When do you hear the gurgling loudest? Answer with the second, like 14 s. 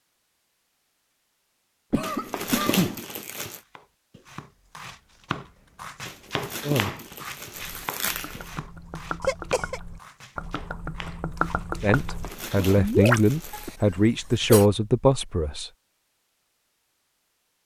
13 s.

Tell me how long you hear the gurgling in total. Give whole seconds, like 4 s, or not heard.
6 s.